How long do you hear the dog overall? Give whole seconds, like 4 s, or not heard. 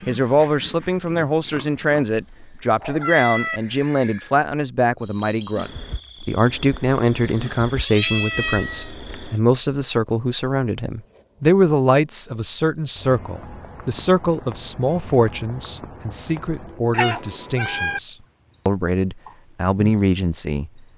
not heard.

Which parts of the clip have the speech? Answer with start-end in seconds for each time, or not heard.
0.1-20.8.